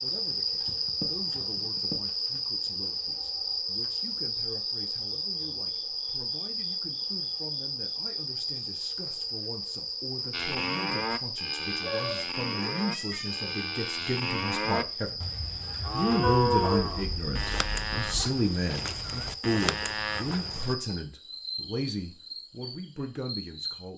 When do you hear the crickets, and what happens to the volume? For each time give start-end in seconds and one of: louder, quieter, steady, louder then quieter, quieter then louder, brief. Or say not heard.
0.0-23.9 quieter.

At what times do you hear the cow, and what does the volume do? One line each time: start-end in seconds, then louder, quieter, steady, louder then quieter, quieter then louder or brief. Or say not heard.
10.3-20.8 steady.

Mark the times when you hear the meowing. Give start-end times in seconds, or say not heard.
0.7-2.0, 11.8-13.5, 16.2-18.2.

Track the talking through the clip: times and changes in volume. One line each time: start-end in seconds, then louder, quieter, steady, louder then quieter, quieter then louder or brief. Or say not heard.
0.0-15.2 louder
15.9-23.9 quieter.